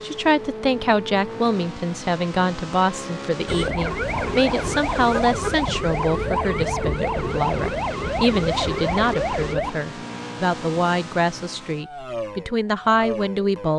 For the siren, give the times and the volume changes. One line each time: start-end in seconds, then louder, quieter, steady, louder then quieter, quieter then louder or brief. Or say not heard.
3.5-9.8 steady.